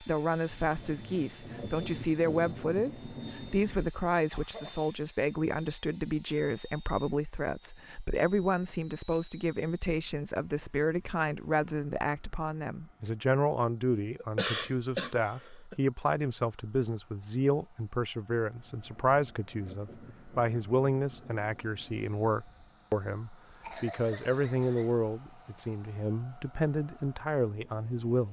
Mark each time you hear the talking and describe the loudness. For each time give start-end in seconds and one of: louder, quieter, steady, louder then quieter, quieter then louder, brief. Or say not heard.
0.0-28.2 steady.